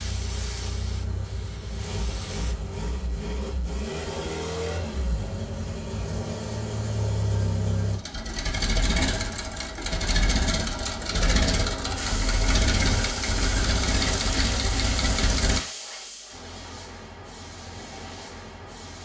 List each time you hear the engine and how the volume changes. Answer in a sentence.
The engine can be heard from 0.0 to 15.6 s, getting louder.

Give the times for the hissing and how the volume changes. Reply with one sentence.
The hissing can be heard briefly from 0.0 to 2.5 s; and from 11.9 to 19.0 s, getting quieter.